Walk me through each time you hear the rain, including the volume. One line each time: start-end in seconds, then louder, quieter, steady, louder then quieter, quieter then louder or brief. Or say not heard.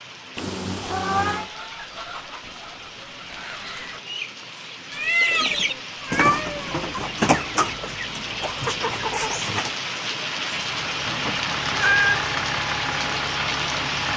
0.0-14.1 louder.